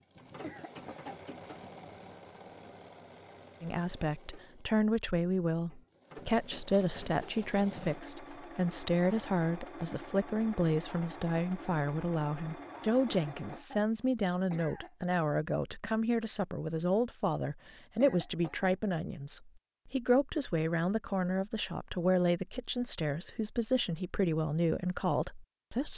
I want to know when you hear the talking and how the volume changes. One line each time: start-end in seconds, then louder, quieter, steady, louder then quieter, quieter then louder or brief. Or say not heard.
3.6-25.9 steady.